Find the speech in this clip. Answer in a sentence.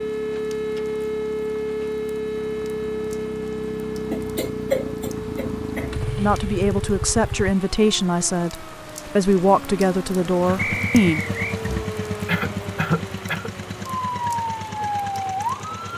The speech can be heard from 6.2 to 11.2 s.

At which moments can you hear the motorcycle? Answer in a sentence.
You can hear the motorcycle from 0.0 to 7.5 s and from 10.4 to 15.9 s.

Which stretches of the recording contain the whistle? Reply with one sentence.
You can hear the whistle from 10.6 to 11.6 s.